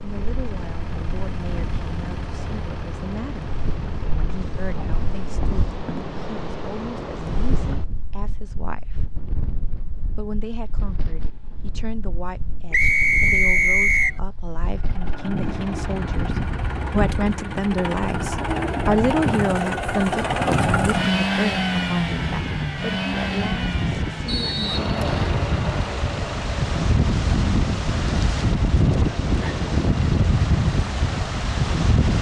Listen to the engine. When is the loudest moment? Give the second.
21 s.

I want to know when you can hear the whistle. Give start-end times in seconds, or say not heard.
12.7-14.2, 24.2-25.4.